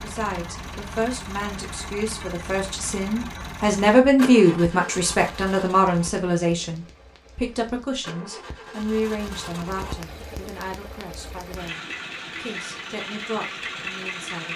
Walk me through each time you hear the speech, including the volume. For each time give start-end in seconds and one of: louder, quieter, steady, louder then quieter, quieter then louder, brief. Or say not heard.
0.0-14.5 louder then quieter.